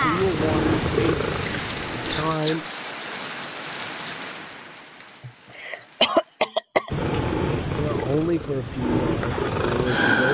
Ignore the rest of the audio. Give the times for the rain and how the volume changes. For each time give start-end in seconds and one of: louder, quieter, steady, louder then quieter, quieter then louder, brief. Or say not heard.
0.0-6.5 quieter.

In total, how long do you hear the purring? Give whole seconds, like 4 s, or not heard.
6 s.